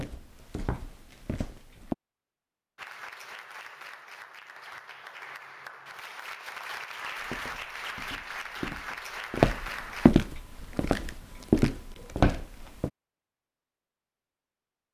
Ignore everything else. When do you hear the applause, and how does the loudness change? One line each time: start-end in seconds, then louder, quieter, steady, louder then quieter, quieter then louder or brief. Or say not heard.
2.8-10.1 louder.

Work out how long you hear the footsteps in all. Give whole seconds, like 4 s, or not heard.
8 s.